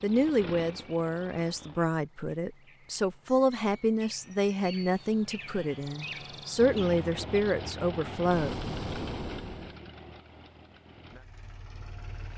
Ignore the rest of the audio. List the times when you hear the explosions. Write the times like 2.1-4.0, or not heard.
8.3-9.8.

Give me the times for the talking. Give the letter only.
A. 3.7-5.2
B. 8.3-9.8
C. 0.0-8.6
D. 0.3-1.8
C.